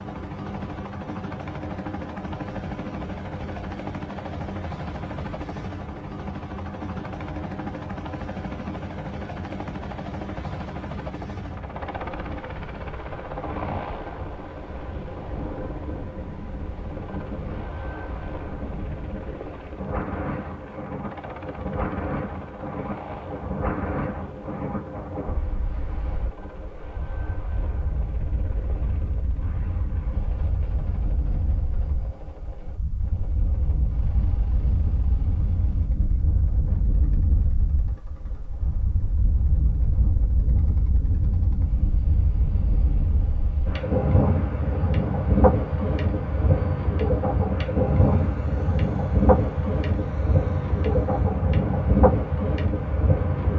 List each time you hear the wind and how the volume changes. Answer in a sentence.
You can hear the wind from 0.0 to 53.5 s, getting louder.